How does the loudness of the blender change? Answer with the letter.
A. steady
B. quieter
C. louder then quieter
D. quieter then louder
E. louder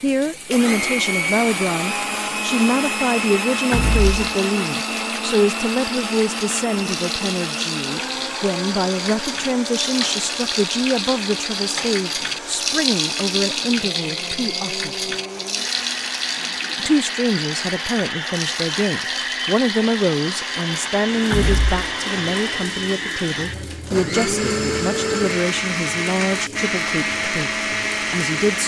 D.